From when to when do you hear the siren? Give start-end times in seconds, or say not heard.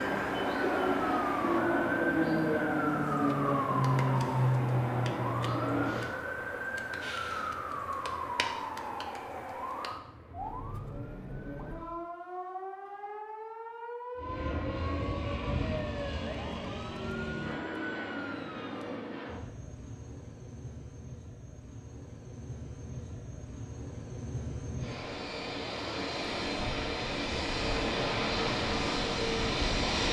0.0-19.1.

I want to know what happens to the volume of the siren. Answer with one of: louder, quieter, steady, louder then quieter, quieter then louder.
quieter.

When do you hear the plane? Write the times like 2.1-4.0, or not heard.
0.0-6.2, 14.2-30.0.